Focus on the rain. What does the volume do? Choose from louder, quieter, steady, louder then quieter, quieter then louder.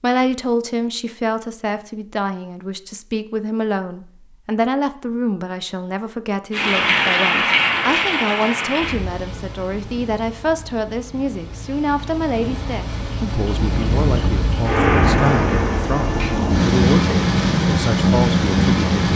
quieter then louder.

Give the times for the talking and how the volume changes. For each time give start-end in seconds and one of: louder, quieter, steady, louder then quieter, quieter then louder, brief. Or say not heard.
0.0-19.0 steady.